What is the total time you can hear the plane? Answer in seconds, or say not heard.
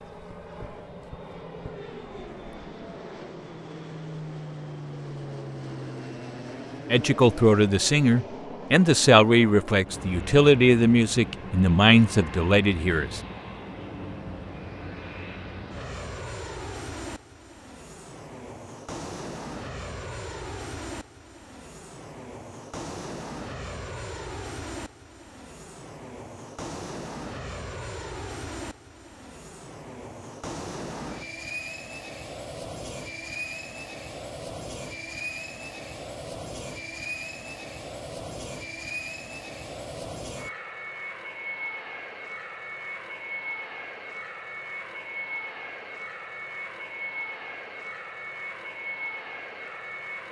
50 s.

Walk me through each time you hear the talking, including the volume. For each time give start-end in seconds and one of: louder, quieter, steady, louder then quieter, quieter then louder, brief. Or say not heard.
6.9-13.2 steady.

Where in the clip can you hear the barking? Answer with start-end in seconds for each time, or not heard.
not heard.